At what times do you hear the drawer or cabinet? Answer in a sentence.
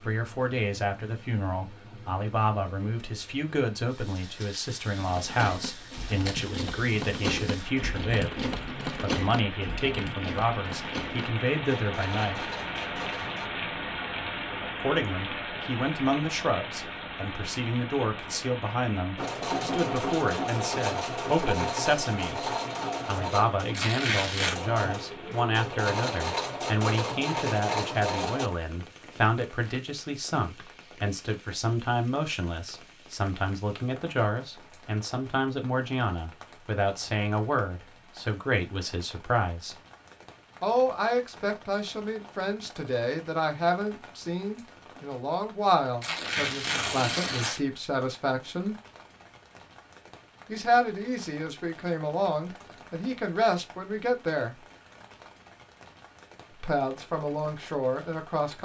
You can't hear the drawer or cabinet here.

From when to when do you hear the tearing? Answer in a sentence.
The tearing can be heard from 5.9 to 6.5 s, from 23.7 to 24.6 s and from 46.0 to 47.6 s.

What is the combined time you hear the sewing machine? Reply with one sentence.
The sewing machine can be heard for 18 seconds in total.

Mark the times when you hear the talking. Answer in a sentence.
The talking can be heard from 0.0 to 12.4 s, from 14.8 to 39.8 s, from 40.6 to 48.8 s, from 50.5 to 54.6 s and from 56.5 to 58.6 s.